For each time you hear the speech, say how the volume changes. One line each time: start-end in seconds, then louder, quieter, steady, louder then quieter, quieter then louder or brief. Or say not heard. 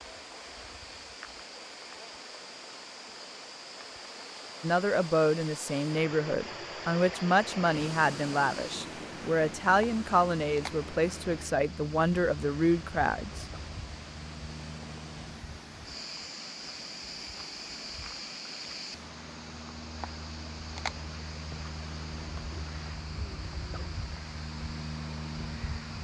4.6-13.4 steady.